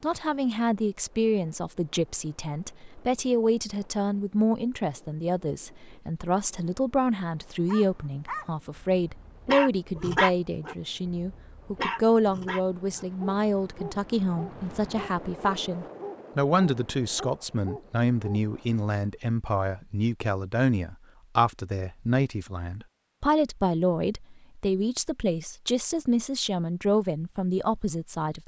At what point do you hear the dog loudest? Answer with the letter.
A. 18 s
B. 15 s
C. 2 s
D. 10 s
D.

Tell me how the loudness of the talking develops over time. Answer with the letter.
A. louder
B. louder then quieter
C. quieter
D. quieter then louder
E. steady
E.